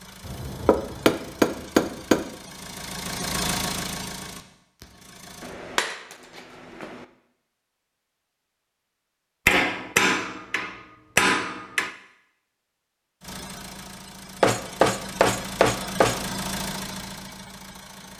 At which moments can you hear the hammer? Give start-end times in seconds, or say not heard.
0.2-2.2, 5.4-7.0, 9.4-11.9, 14.4-16.2.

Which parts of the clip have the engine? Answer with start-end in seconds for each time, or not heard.
0.0-5.5, 13.2-18.1.